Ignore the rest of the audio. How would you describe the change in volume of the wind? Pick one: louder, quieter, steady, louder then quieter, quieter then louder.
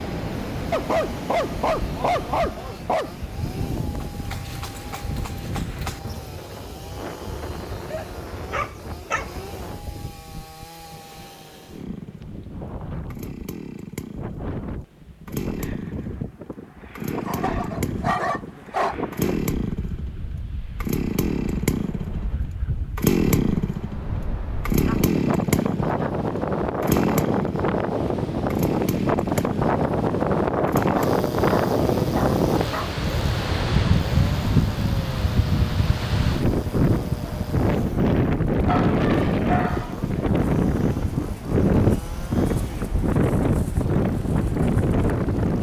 louder.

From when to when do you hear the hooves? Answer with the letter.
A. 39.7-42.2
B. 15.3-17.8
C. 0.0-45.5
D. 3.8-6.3
D.